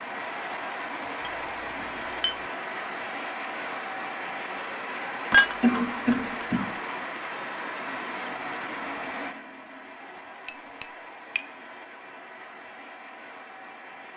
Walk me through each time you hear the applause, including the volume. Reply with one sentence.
You can hear the applause from 0.0 to 14.1 s, getting quieter.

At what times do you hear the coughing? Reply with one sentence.
The coughing can be heard from 5.6 to 6.8 s.